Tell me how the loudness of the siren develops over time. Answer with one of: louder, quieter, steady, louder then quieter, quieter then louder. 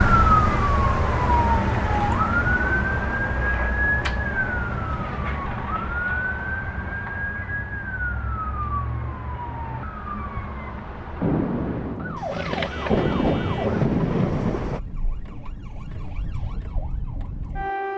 quieter.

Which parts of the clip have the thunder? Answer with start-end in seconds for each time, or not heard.
11.2-14.8.